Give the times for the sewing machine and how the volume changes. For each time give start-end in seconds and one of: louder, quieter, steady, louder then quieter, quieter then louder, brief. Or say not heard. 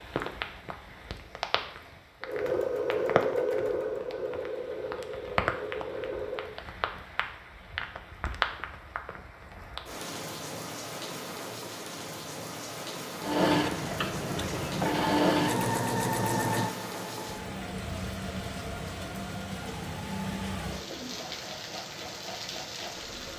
2.2-6.5 quieter
13.2-23.3 quieter.